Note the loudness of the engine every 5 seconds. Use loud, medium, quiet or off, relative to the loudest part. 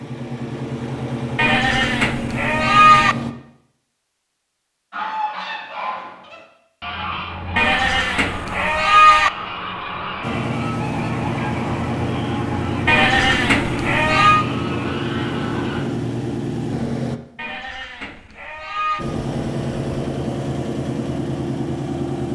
loud, off, loud, loud, loud.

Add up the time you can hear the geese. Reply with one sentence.
You can hear the geese for 11 seconds altogether.